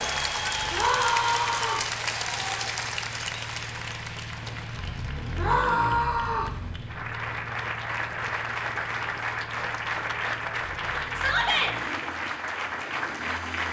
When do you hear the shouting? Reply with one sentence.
The shouting can be heard from 0.7 to 1.9 s, from 5.3 to 6.5 s and from 11.2 to 11.8 s.